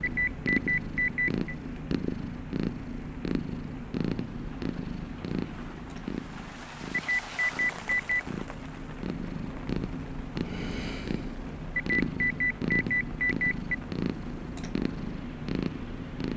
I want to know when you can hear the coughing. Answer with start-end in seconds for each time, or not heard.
not heard.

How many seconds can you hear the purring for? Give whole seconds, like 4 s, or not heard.
16 s.